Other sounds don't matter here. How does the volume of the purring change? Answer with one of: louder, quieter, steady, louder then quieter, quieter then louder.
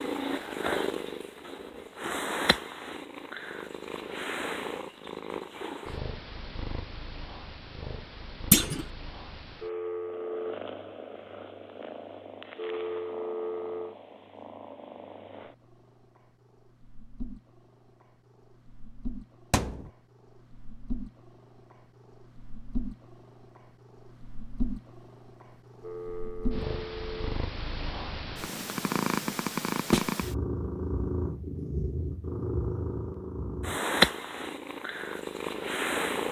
quieter then louder.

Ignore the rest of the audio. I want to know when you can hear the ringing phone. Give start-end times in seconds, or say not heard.
9.6-10.6, 12.6-13.9, 25.8-27.4.